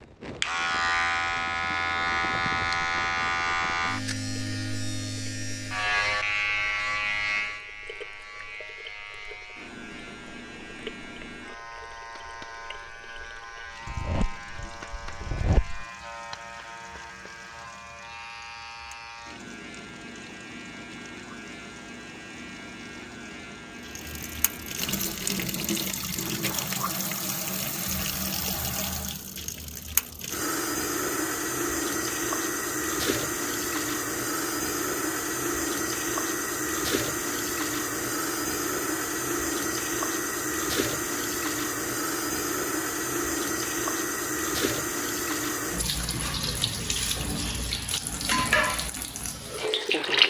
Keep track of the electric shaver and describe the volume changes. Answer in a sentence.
The loudness of the electric shaver goes down.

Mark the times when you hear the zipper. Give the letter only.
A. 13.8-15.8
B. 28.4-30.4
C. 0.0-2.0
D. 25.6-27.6
A.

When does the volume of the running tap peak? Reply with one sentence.
The loudest moment of the running tap is at 50 seconds.